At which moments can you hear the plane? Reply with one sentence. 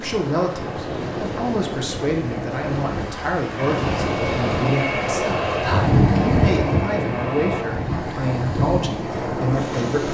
You can hear the plane from 3.5 to 7.7 s.